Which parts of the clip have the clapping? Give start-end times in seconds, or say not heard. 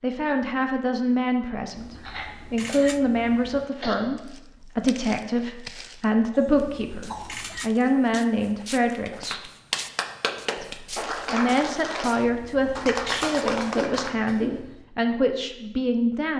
8.9-14.2.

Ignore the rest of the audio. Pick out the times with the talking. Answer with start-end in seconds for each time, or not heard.
0.0-9.4, 10.6-16.3.